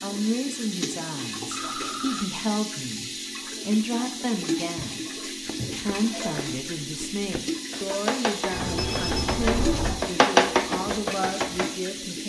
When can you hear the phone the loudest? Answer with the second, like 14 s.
9 s.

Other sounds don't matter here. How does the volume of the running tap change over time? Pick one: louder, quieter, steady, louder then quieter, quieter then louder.
steady.